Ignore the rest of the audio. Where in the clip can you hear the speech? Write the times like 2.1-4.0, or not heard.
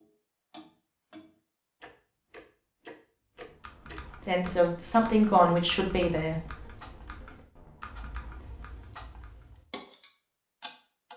4.2-6.6.